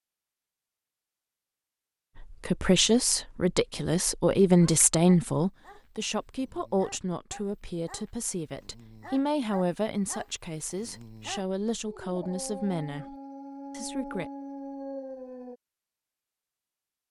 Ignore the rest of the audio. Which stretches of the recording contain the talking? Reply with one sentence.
You can hear the talking from 2.2 to 13.2 s and from 13.8 to 14.3 s.